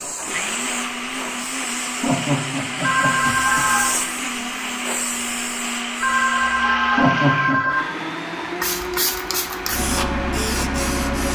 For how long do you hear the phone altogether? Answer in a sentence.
The phone can be heard for 3 seconds in total.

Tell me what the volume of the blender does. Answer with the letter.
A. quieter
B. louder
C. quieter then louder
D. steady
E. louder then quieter
D.